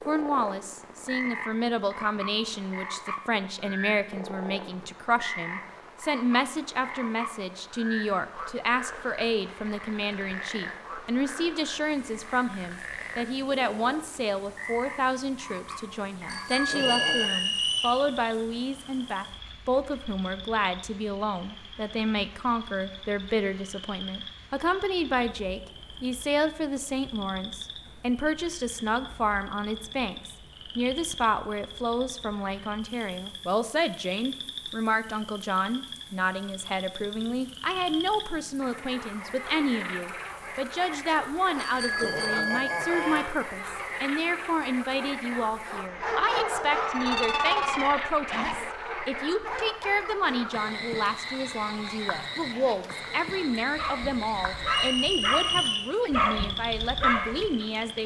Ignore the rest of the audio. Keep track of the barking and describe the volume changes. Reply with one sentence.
The loudness of the barking goes down, then up.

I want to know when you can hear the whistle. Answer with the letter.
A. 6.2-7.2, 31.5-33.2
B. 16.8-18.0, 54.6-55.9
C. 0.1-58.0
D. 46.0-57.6
B.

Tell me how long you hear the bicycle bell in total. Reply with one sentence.
You can hear the bicycle bell for 3 seconds altogether.